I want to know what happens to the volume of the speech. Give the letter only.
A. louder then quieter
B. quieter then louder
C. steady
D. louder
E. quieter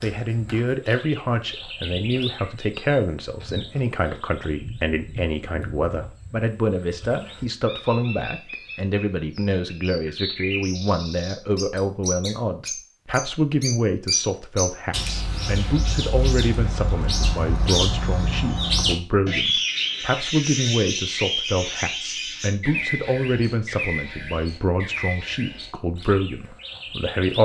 C.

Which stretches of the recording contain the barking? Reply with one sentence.
The barking can't be heard in this clip.